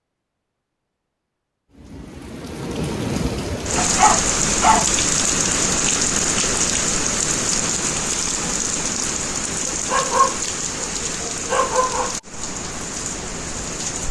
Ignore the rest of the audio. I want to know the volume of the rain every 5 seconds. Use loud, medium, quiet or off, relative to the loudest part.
loud, loud, medium.